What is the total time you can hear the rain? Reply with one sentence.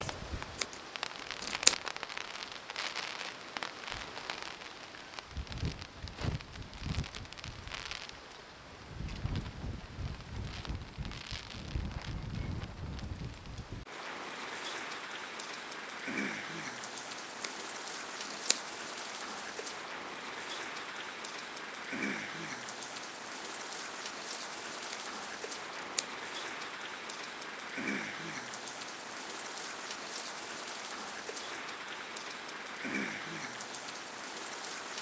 The rain can be heard for 35 seconds in total.